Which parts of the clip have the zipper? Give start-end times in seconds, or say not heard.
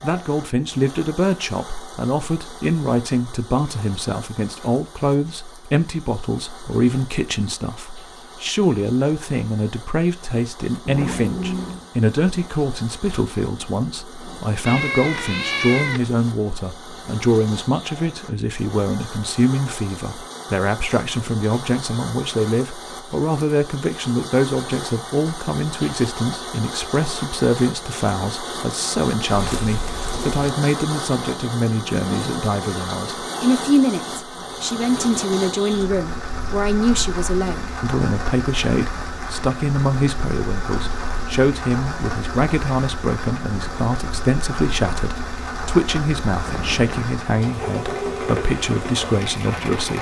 10.8-11.9, 29.3-30.4.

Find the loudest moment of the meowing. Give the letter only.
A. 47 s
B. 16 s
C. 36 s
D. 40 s
B.